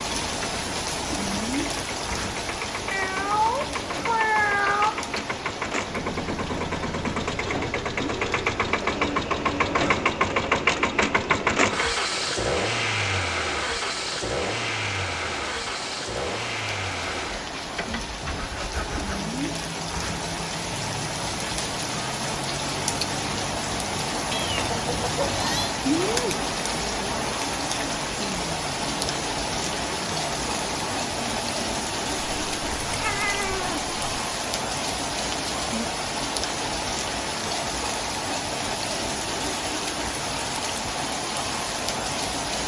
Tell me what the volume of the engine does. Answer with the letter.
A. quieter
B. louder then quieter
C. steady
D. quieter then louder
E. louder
B.